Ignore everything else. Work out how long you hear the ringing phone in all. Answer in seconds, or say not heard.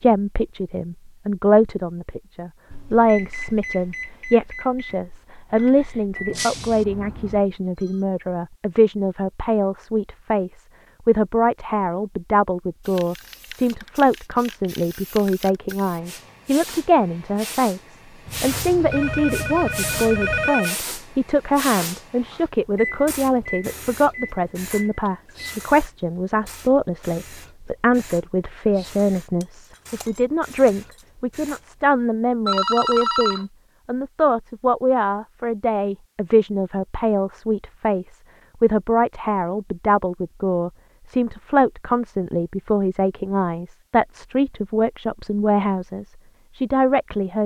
5 s.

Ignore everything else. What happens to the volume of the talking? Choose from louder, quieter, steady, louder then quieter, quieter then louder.
steady.